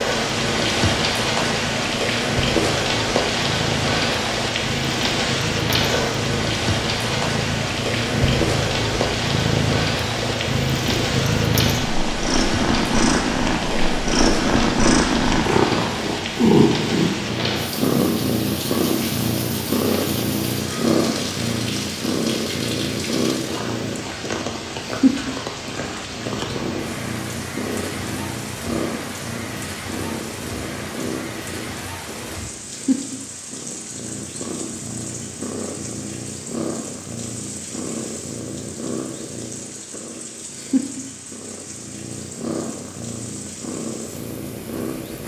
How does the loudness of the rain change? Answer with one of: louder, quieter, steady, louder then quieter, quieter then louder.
quieter.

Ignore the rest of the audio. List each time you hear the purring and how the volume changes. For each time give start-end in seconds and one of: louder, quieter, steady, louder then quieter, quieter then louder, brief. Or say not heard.
0.0-45.2 louder then quieter.